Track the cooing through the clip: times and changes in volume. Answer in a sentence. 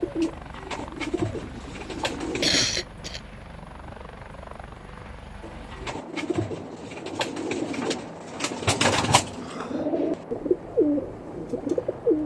The cooing can be heard briefly from 0.0 to 2.6 s; and from 5.4 to 12.2 s, getting louder.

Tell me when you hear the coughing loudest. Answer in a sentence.
The loudest moment of the coughing is at 3 seconds.